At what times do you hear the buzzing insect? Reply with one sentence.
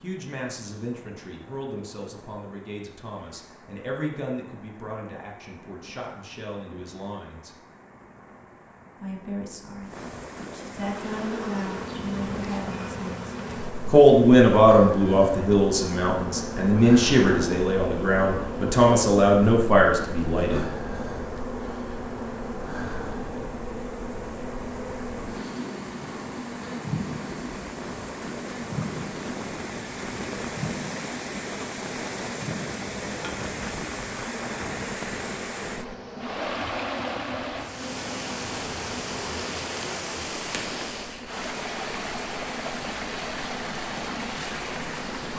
The buzzing insect can be heard from 10.8 to 45.3 s.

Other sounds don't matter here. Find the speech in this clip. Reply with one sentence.
You can hear the speech from 0.0 to 7.5 s, from 9.0 to 9.9 s and from 10.5 to 20.6 s.